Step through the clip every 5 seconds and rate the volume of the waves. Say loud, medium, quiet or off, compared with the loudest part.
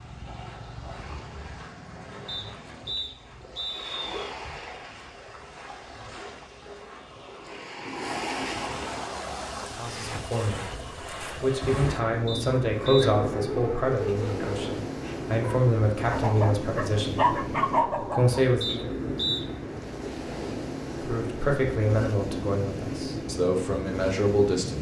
medium, loud, loud, loud, loud.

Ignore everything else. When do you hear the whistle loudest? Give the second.
19 s.